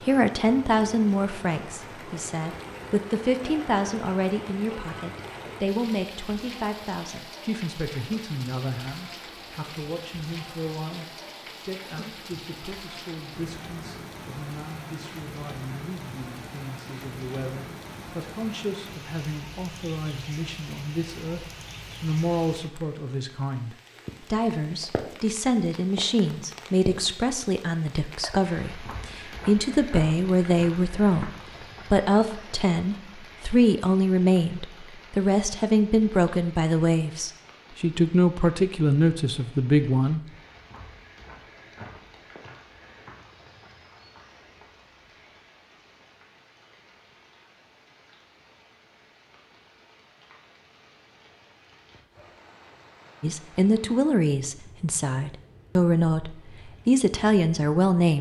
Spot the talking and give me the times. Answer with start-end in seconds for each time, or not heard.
0.1-31.3, 31.9-40.2, 53.2-58.1.